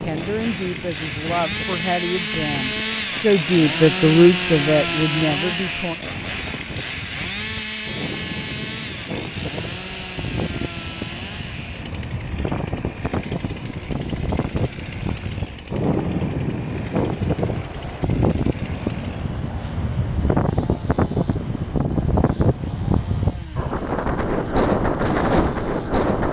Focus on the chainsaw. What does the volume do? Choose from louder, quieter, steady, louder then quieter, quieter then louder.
quieter.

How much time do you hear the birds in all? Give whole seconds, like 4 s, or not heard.
not heard.